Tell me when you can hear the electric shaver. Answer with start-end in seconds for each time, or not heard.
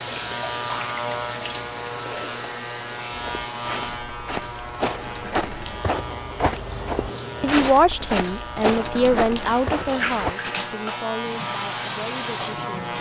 0.0-12.9.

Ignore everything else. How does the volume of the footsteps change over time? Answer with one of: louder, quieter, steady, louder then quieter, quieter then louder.
louder.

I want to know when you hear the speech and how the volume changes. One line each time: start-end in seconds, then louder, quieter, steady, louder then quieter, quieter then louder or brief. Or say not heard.
7.4-12.9 quieter.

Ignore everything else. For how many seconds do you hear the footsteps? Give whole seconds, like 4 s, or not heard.
7 s.